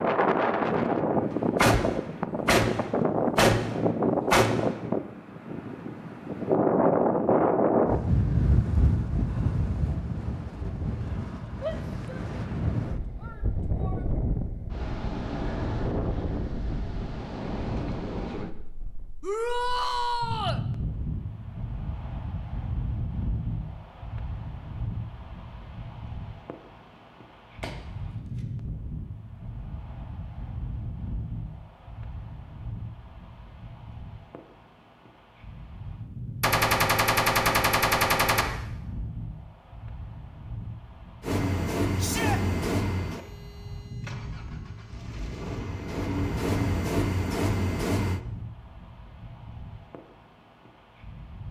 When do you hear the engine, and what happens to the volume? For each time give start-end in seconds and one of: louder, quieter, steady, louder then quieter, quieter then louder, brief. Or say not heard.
41.2-48.2 quieter then louder.